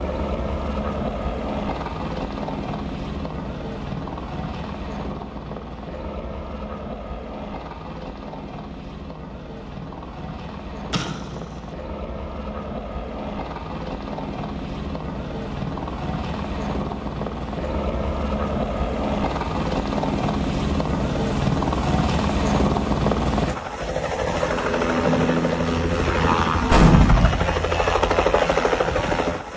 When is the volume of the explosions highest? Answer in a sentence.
The loudest moment of the explosions is at 27 seconds.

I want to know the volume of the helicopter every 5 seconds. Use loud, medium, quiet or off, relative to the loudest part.
medium, quiet, medium, medium, loud, loud.